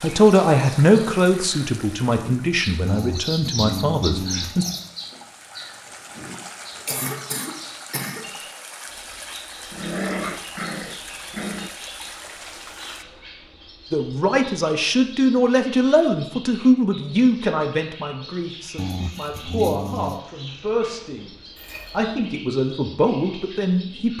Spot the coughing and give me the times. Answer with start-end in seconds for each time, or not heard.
6.8-8.2, 21.6-22.1.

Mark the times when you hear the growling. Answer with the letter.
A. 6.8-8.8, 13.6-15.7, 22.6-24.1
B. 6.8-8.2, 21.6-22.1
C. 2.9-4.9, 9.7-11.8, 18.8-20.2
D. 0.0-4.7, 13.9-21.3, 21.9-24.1
C.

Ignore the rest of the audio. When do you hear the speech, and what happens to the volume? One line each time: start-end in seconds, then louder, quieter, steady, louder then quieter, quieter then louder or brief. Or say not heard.
0.0-4.7 quieter
13.9-21.3 quieter then louder
21.9-24.1 brief.